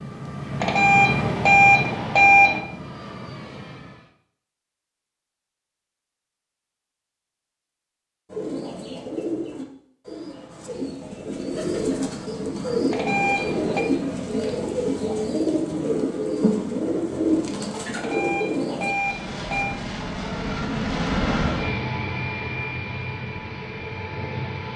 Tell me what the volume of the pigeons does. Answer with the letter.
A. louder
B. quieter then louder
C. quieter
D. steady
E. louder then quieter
A.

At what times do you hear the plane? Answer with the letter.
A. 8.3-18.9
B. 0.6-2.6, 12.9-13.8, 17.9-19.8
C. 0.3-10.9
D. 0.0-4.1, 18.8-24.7
D.